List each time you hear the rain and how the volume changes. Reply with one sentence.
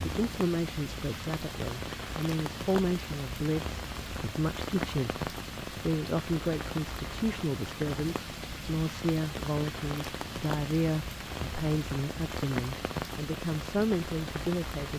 The rain can be heard from 0.0 to 14.9 s, at a steady volume.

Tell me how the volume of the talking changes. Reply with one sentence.
The loudness of the talking stays about the same.